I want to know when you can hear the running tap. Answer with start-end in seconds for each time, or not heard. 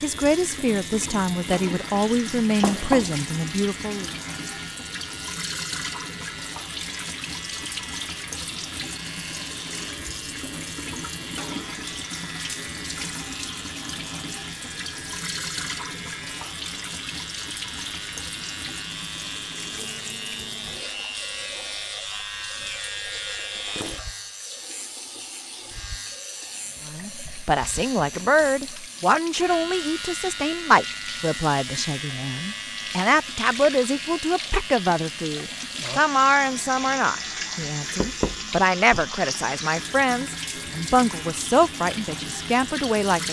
0.0-43.2.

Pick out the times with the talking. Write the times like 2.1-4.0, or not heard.
0.0-4.1, 26.9-43.2.